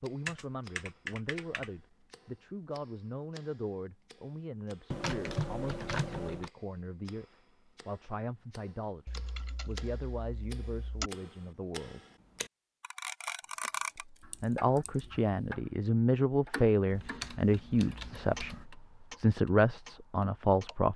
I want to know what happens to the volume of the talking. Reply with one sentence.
The volume of the talking goes up.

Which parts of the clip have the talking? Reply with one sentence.
The talking can be heard from 0.0 to 12.0 s and from 14.2 to 20.9 s.